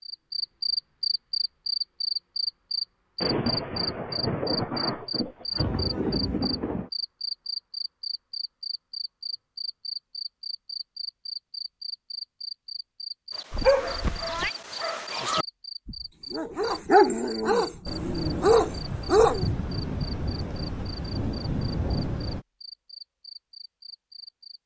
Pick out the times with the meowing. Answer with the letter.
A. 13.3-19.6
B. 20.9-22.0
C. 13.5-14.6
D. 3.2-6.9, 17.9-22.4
C.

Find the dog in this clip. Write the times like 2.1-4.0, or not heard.
13.3-19.6.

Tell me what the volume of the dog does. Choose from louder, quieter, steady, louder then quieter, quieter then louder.
louder.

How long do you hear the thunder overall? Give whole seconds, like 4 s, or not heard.
8 s.